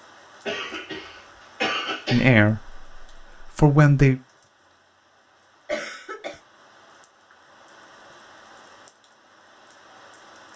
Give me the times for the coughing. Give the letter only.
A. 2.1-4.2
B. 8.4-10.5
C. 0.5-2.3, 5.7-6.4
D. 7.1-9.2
C.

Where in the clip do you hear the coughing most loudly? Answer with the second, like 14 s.
2 s.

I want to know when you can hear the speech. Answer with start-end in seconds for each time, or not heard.
2.1-4.2.